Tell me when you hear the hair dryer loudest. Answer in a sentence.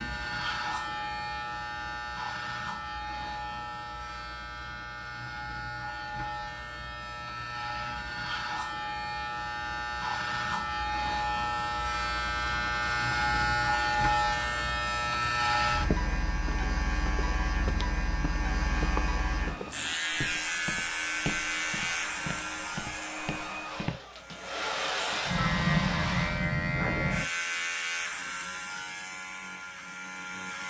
The loudest moment of the hair dryer is at 25 seconds.